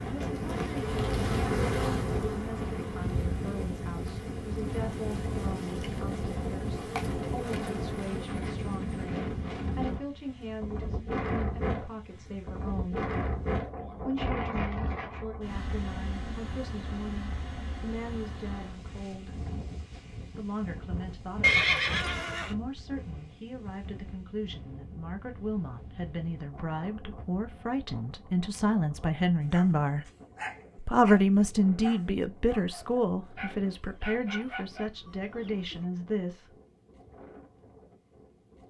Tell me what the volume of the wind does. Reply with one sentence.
The volume of the wind goes down.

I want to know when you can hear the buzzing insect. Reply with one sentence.
You can hear the buzzing insect from 0.0 to 8.3 s.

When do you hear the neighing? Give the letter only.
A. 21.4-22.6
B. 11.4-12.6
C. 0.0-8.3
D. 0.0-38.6
A.